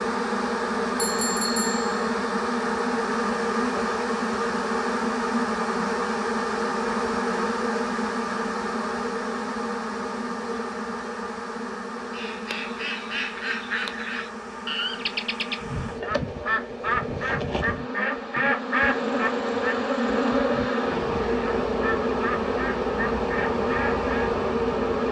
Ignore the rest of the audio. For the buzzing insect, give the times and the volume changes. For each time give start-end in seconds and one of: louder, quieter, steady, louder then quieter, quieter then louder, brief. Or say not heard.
0.0-25.0 quieter then louder.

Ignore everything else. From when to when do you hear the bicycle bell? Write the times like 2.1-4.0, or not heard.
0.9-2.0.